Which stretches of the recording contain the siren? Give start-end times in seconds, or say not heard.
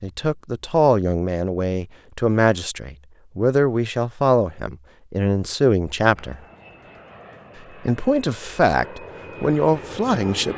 not heard.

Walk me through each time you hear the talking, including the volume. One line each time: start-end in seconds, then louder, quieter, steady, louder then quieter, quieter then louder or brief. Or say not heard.
0.0-6.4 steady
7.8-10.5 brief.